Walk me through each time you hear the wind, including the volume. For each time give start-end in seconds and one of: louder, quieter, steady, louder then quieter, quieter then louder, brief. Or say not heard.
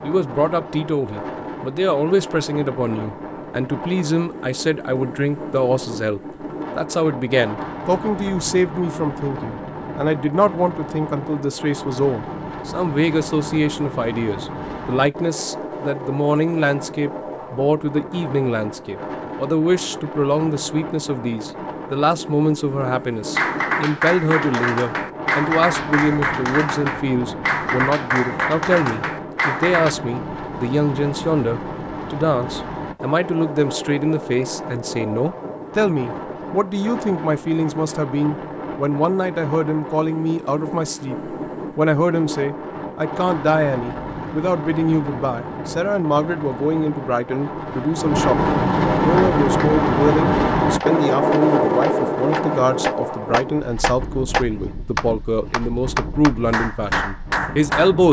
0.0-58.0 louder.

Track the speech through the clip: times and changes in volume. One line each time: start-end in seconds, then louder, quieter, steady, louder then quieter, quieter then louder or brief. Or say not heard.
0.0-58.0 steady.